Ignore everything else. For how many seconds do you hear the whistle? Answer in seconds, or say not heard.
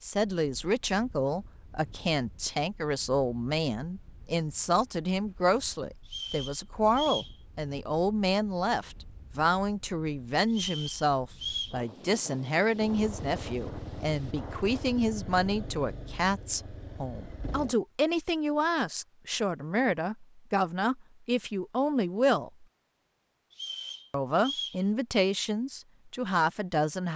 4 s.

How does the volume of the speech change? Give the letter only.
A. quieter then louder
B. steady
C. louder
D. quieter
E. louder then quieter
B.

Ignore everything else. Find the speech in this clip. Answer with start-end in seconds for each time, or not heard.
0.0-22.6, 24.1-27.1.